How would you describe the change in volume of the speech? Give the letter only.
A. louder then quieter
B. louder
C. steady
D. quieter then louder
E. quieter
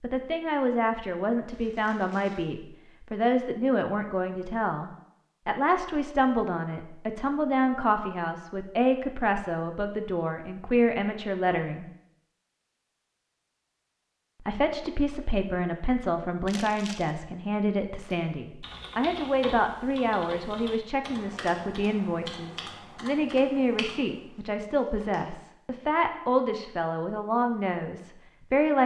C.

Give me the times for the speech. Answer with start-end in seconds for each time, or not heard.
0.0-11.8, 14.4-28.8.